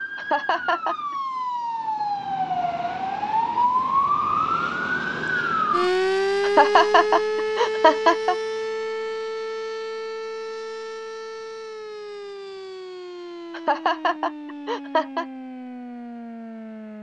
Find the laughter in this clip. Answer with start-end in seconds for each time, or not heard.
0.1-0.9, 6.4-8.3, 13.5-15.2.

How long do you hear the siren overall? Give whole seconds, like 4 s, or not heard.
17 s.